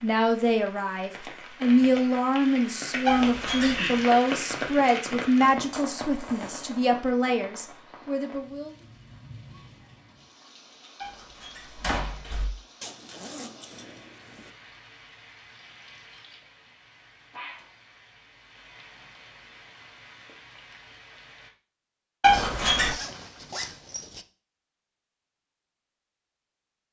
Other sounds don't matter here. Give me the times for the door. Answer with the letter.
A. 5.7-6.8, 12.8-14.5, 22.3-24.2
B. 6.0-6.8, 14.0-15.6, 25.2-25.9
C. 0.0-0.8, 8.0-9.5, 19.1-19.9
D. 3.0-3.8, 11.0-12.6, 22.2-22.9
D.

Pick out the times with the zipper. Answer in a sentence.
The zipper can be heard from 5.7 to 6.8 s, from 12.8 to 14.5 s and from 22.3 to 24.2 s.